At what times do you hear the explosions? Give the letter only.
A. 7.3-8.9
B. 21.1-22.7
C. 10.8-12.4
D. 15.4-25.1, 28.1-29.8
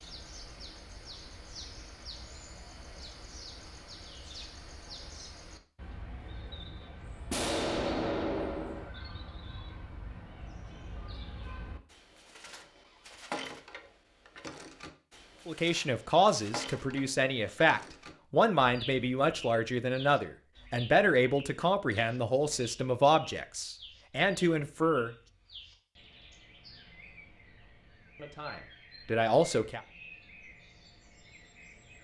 A.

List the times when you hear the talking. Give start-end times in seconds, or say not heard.
15.4-25.1, 28.1-29.8.